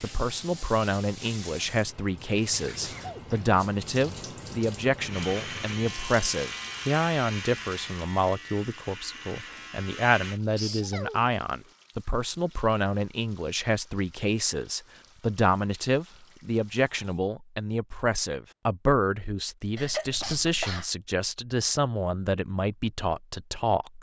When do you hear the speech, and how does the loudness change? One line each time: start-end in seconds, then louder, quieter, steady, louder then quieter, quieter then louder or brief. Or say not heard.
0.0-23.9 steady.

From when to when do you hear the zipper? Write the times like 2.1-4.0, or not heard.
not heard.